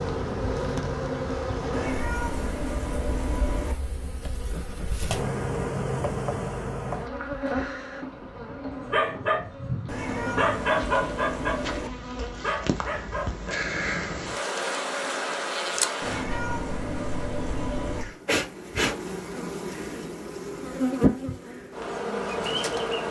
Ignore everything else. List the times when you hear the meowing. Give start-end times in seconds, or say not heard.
1.7-3.8, 9.8-11.9, 16.0-18.1.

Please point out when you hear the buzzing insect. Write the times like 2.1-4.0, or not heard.
0.0-23.0.